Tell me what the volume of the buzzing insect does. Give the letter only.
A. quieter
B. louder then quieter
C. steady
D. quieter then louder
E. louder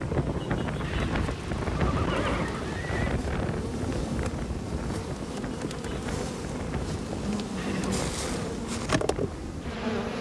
E.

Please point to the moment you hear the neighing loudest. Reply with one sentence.
The volume of the neighing peaks at 2 seconds.